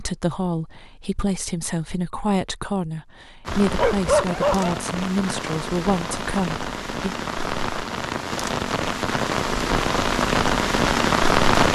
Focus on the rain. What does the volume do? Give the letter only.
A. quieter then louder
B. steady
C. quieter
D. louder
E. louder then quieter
D.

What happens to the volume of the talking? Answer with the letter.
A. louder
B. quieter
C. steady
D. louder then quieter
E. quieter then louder
C.